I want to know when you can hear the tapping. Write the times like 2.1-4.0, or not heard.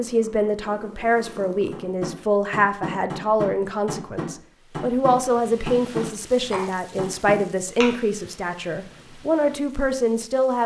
1.7-8.0.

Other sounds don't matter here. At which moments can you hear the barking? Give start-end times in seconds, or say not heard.
not heard.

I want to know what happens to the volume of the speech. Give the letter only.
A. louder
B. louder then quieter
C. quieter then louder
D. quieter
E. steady
E.